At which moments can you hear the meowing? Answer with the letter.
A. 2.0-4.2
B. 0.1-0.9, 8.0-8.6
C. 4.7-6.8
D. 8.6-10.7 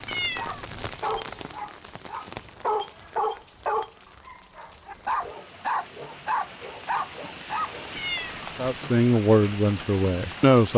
B.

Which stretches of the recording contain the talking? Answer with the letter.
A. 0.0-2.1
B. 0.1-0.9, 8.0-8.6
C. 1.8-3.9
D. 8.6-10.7
D.